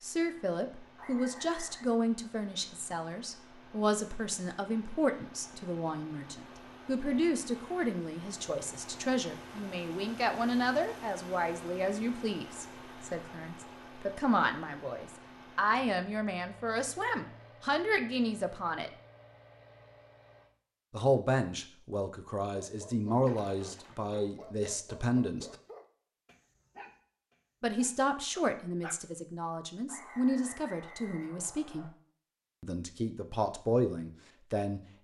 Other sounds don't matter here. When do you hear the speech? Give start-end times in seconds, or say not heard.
0.0-18.9, 20.9-25.6, 27.6-31.9, 32.6-34.8.